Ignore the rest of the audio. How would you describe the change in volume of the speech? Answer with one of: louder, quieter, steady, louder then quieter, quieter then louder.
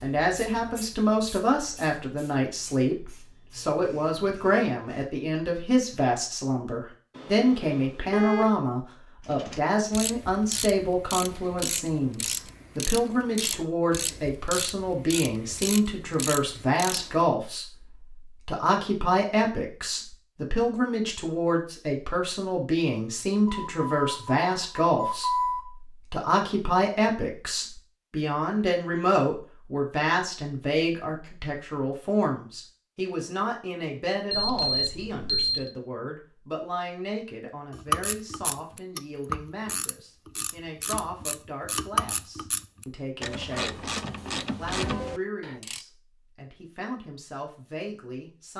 quieter.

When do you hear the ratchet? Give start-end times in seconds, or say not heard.
9.2-17.2, 37.7-45.9.